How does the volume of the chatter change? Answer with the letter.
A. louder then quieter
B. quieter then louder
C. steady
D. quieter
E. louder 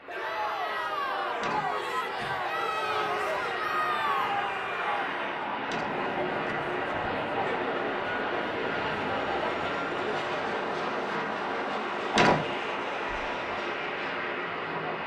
D.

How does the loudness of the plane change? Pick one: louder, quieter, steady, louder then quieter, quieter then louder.
louder.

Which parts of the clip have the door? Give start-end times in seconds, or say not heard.
1.4-2.4, 5.7-7.0, 12.1-12.5.